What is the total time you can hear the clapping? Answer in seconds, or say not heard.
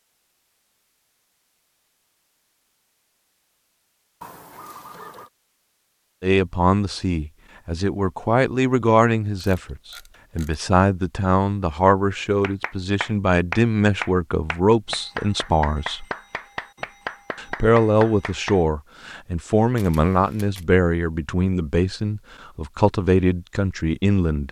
6 s.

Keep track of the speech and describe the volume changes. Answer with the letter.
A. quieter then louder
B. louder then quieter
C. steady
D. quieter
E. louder
C.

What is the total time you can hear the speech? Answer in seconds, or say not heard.
17 s.